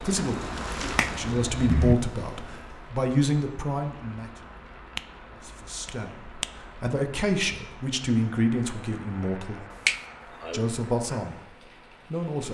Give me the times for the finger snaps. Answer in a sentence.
You can hear the finger snaps from 0.9 to 1.9 s, from 5.8 to 6.5 s and from 9.8 to 10.7 s.